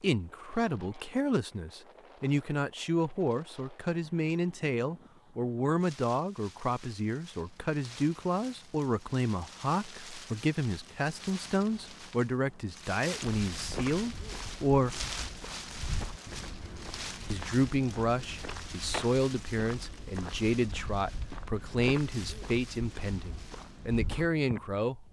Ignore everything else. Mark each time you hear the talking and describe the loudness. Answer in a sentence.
The talking can be heard from 0.0 to 15.1 s, at a steady volume; and from 17.3 to 25.0 s, at a steady volume.